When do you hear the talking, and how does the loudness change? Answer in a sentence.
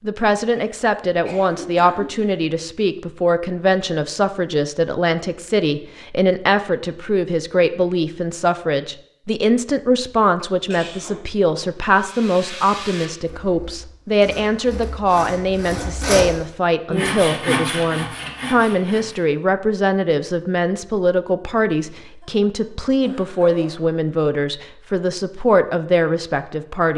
You can hear the talking from 0.0 to 26.9 s, at a steady volume.